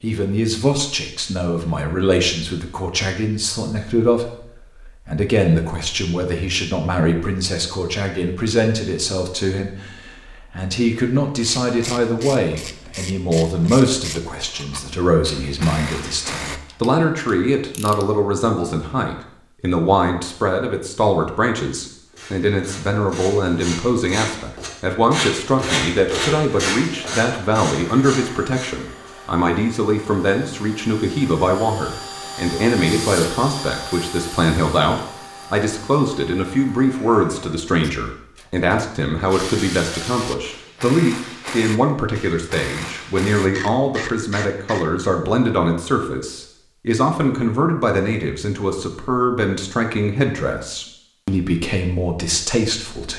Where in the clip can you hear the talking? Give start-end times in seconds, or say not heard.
0.0-53.1.